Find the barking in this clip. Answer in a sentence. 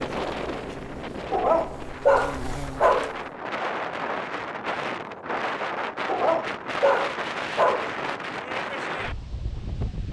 You can hear the barking from 1.3 to 3.1 s and from 6.0 to 8.0 s.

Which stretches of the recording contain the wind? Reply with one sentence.
You can hear the wind from 0.0 to 10.0 s.